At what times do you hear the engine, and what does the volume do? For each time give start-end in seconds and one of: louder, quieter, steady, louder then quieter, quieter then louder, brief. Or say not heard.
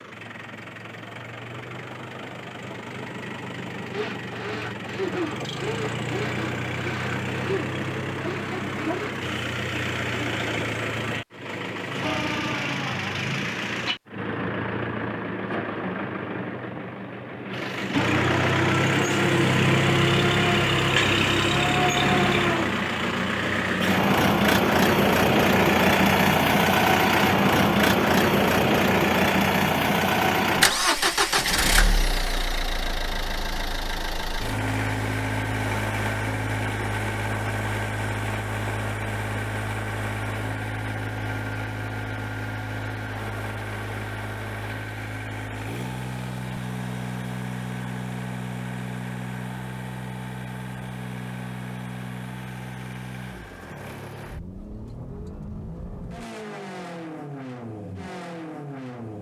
0.0-59.1 louder then quieter.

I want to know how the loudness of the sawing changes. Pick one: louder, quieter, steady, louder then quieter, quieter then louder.
steady.